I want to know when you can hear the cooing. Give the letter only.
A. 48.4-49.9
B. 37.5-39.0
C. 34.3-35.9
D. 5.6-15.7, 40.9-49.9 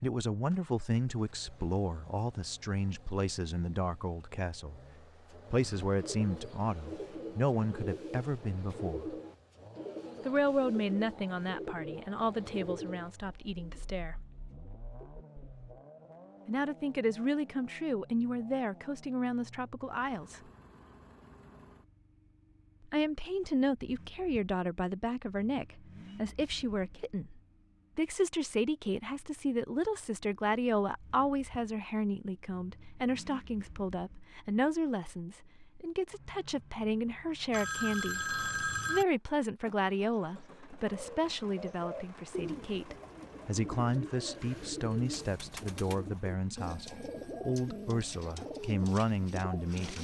D.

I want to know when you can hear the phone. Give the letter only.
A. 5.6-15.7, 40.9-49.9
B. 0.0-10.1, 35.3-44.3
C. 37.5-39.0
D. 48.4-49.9
C.